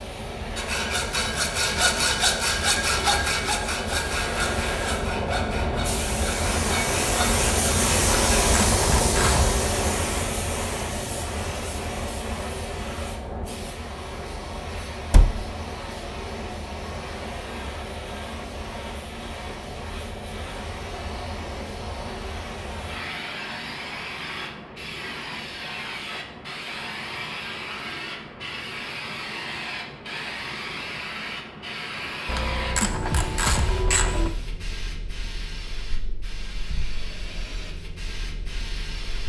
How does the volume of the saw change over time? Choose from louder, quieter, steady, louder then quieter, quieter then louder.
quieter.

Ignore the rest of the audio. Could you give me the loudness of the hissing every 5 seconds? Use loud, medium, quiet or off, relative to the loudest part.
medium, loud, medium, medium, medium, medium, medium, quiet.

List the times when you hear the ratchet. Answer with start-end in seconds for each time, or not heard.
8.3-9.6, 32.2-34.3.